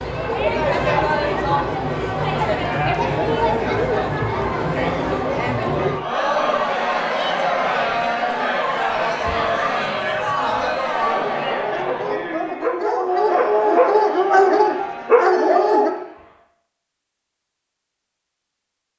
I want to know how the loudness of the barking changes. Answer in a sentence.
The loudness of the barking goes up.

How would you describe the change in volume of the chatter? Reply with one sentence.
The volume of the chatter goes down.